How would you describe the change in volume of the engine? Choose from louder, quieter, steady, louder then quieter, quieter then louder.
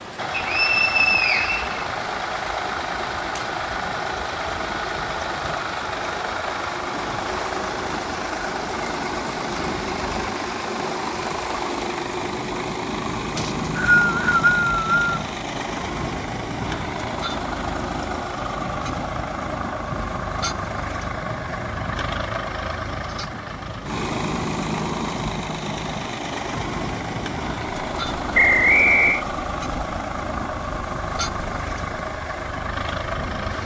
steady.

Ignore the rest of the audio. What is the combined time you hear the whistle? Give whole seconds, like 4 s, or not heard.
4 s.